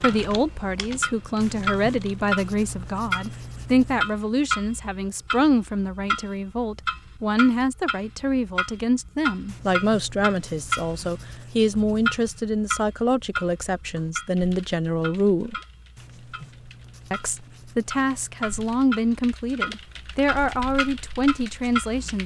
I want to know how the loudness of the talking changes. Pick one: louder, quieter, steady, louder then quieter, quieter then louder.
steady.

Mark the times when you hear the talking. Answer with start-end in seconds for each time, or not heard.
0.0-15.6, 17.1-22.2.